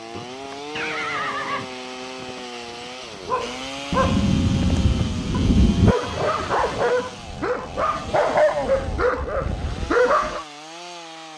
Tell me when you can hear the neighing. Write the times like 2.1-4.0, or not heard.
0.1-1.8, 5.9-7.0.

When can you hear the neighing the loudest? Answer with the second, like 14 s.
1 s.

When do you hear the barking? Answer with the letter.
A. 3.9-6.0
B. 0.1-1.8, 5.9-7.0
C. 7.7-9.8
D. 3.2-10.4
D.